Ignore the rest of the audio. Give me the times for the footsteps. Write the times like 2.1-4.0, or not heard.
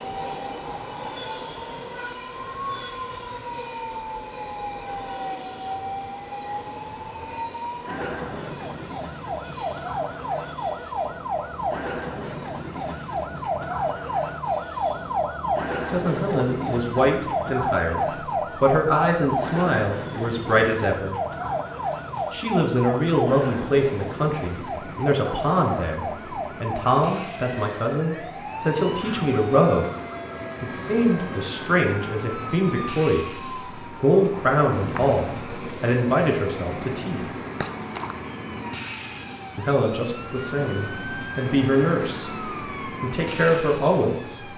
not heard.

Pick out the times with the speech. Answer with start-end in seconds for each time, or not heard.
15.9-21.1, 22.3-29.9, 30.6-37.2, 39.5-44.5.